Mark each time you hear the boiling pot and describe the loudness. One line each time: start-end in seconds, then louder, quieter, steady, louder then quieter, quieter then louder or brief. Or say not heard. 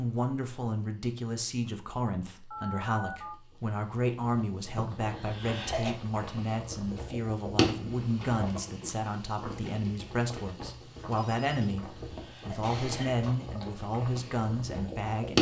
0.0-15.3 louder then quieter.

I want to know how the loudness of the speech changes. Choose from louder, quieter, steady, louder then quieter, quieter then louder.
steady.